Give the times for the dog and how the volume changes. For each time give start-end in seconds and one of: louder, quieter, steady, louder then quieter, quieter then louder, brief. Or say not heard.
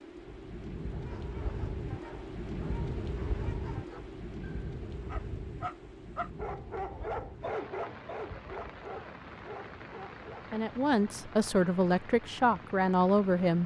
0.9-10.4 louder then quieter.